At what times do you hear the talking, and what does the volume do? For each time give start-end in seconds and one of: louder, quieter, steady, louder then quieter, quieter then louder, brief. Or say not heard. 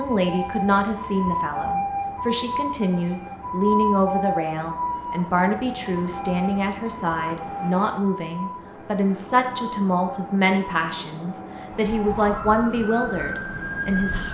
0.0-14.3 steady.